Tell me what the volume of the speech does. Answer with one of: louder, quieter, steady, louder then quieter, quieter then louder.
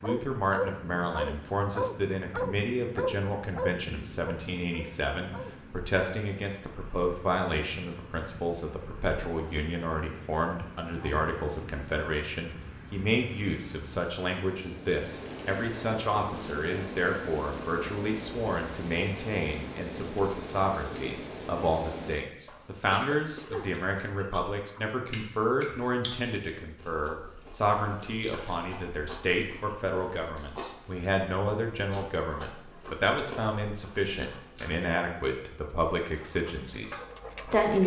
steady.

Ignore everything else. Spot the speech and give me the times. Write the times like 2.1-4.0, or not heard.
0.0-37.8.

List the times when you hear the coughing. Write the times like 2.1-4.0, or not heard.
22.4-23.8.